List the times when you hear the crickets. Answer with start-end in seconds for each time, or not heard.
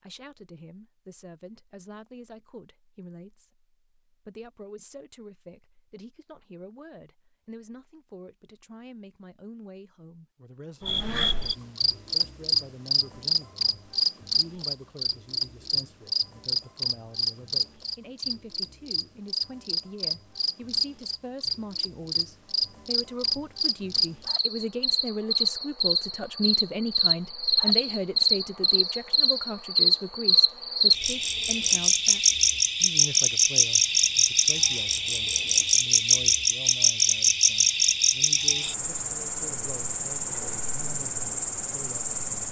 10.8-42.4.